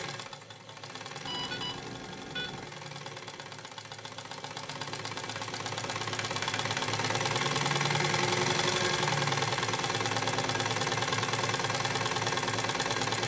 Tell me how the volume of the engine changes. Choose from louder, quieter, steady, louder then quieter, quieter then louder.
louder.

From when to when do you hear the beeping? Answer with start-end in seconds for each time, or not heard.
1.2-2.6.